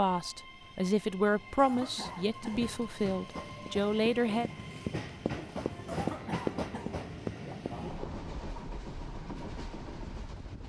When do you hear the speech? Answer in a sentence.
You can hear the speech from 0.0 to 4.5 s.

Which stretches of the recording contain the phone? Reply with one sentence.
The phone can't be heard in this clip.